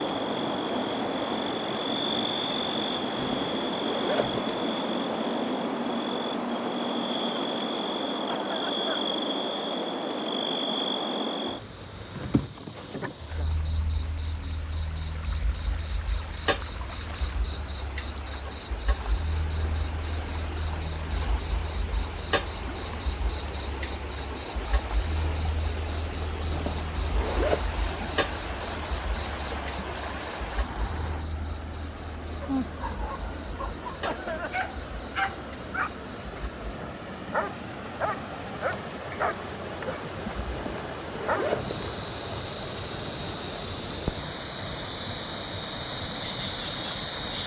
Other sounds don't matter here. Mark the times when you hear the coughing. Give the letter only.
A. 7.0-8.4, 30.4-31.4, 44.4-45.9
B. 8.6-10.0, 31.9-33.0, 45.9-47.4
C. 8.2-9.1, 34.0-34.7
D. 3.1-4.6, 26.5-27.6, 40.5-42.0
C.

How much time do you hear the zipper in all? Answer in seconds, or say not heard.
4 s.